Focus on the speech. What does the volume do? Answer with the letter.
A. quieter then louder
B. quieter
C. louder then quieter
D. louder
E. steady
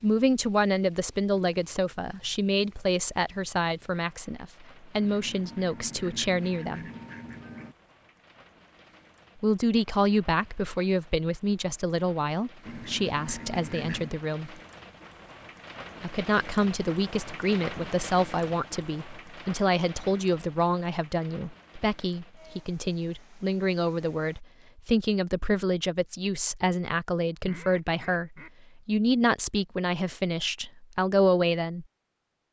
E.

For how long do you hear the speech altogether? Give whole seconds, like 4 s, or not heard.
28 s.